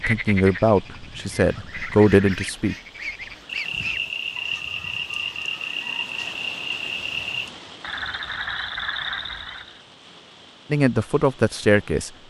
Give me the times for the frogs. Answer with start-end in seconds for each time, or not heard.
0.0-9.8.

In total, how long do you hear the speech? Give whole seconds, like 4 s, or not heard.
4 s.